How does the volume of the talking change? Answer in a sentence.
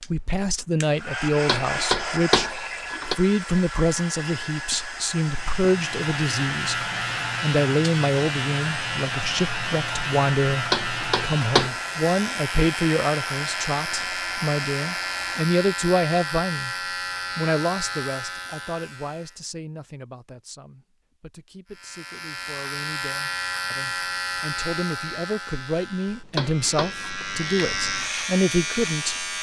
The volume of the talking goes down, then up.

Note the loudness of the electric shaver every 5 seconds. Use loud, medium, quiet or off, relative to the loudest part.
off, loud, loud, loud, loud, loud.